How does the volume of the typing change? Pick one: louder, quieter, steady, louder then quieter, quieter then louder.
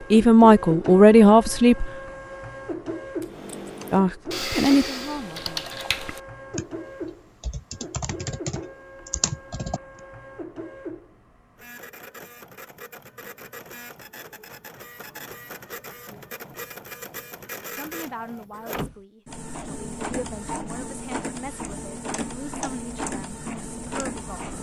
quieter then louder.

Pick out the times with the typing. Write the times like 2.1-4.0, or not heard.
3.2-10.0.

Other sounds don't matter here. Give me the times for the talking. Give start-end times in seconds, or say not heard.
0.1-1.9, 3.9-5.7, 17.7-24.4.